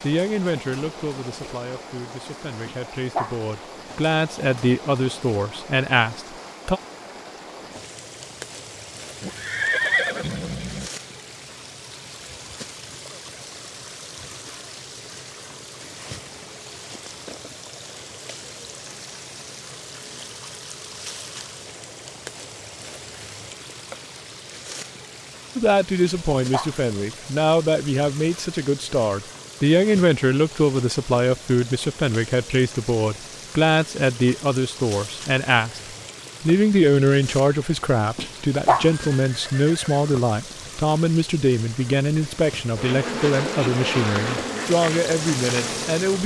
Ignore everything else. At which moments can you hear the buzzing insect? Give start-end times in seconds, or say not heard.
42.8-46.2.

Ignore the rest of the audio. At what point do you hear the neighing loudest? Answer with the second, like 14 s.
10 s.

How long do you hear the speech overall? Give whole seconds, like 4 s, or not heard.
27 s.